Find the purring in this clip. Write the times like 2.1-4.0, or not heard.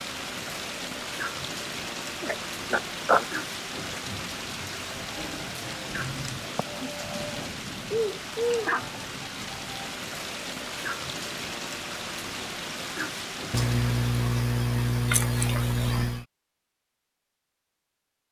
not heard.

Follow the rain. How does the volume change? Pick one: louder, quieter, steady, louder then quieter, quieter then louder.
steady.